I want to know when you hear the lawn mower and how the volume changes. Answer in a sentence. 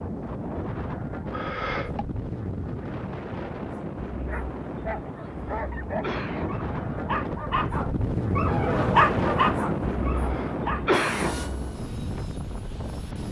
The lawn mower can't be heard in this clip.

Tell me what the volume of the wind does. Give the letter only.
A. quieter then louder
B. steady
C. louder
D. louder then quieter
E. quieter
D.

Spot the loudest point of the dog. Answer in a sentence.
The loudest moment of the dog is at 9 seconds.